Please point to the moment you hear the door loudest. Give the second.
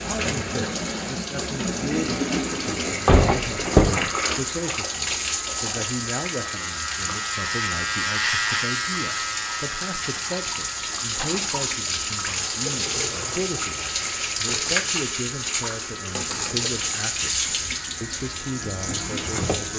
4 s.